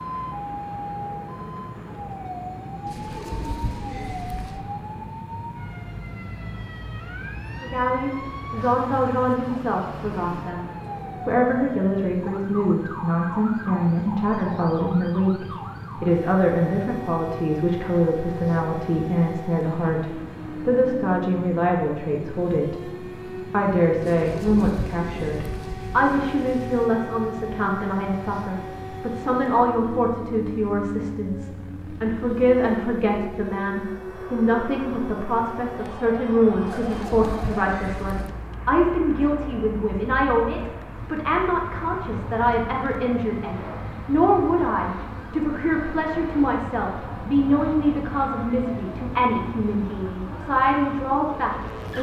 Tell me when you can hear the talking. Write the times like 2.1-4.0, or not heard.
7.5-10.7, 11.2-51.9.